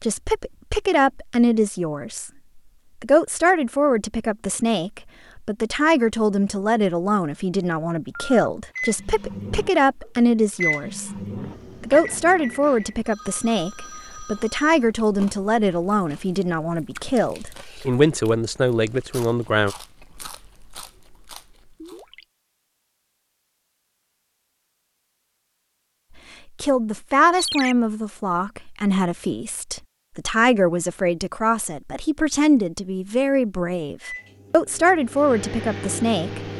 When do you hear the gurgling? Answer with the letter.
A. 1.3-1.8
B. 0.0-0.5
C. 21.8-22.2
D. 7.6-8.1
C.